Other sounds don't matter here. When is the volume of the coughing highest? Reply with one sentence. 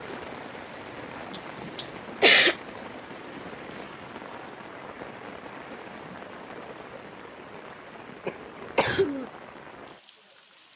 The loudest moment of the coughing is at 2 seconds.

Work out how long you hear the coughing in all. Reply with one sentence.
The coughing can be heard for 2 seconds in total.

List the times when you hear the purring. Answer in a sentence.
You can't hear the purring here.